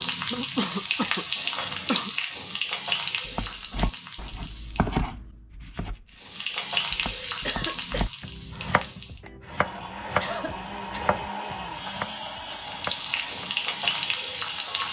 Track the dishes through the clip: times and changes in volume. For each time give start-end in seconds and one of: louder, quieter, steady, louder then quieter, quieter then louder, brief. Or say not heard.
not heard.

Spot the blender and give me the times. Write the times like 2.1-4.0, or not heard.
9.4-14.8.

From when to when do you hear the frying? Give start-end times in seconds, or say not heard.
0.0-5.0, 6.2-9.2, 12.6-14.8.